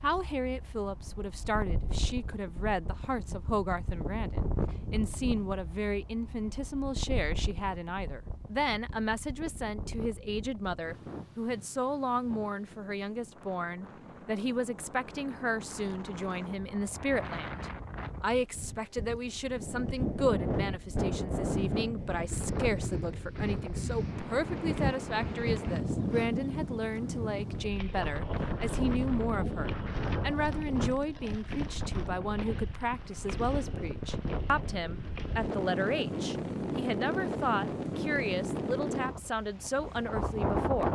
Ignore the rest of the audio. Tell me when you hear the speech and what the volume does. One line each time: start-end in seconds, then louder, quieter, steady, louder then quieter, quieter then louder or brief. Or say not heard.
0.0-40.9 steady.